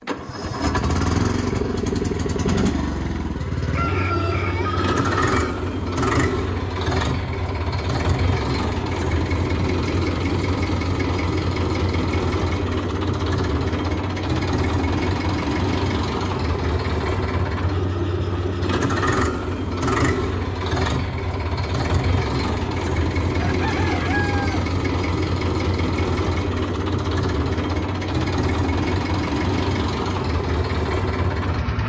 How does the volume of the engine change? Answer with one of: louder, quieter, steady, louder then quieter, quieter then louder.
steady.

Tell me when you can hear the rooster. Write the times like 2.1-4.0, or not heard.
3.7-5.5, 23.3-24.6.